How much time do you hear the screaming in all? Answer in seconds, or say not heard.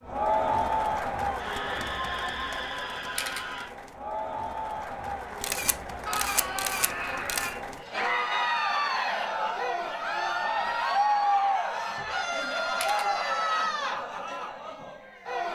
6 s.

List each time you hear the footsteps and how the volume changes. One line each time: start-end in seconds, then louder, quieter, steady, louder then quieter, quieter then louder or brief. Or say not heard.
not heard.